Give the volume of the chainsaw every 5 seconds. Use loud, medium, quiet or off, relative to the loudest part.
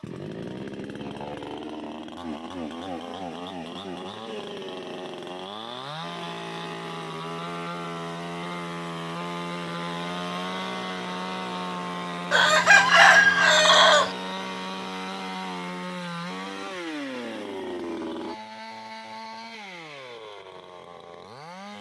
loud, loud, loud, loud, medium.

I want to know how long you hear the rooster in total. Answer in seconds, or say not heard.
2 s.